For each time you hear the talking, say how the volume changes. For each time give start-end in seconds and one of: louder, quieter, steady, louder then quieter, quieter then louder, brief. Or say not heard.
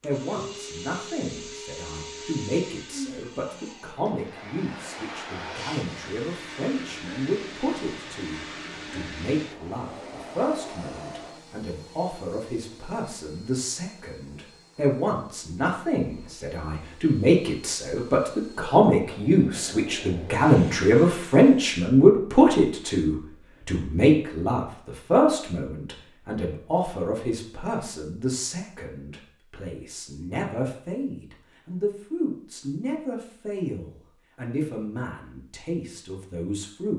0.0-36.9 louder then quieter.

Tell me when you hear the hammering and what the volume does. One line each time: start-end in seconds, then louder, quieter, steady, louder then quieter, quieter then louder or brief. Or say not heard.
not heard.